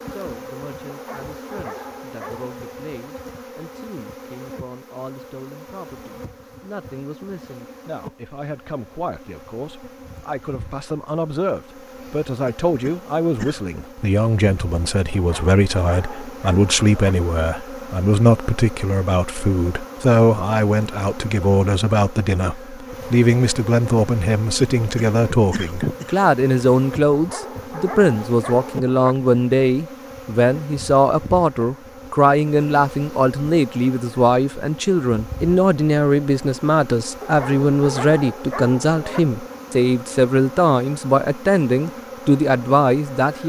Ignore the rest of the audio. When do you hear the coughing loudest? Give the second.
26 s.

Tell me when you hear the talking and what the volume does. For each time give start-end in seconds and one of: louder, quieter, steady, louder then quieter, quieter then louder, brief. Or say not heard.
0.1-43.4 louder.